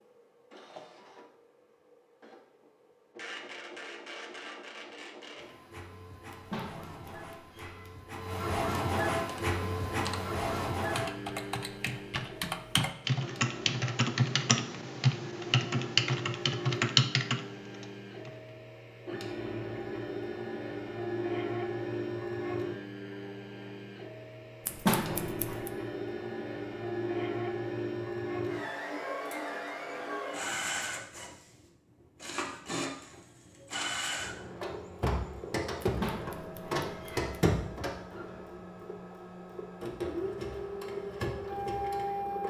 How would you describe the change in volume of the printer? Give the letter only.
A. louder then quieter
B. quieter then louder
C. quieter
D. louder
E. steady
D.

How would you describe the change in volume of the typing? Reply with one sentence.
The volume of the typing goes up.